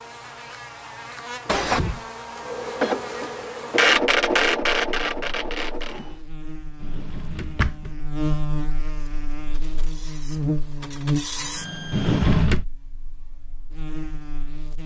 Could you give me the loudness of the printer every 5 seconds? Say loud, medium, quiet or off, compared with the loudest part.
loud, medium, quiet.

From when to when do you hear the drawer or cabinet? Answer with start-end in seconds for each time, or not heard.
1.4-2.0, 6.8-8.0, 11.9-12.7.